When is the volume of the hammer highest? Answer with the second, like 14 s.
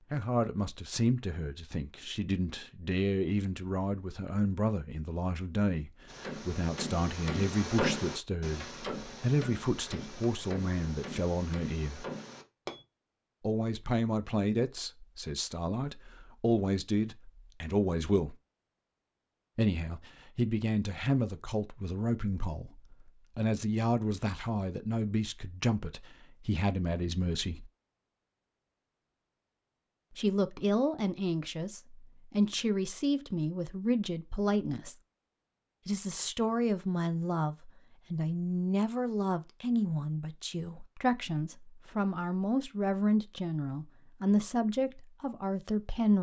8 s.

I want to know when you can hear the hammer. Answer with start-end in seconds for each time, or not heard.
6.0-12.8.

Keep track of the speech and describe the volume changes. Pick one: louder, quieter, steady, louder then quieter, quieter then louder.
steady.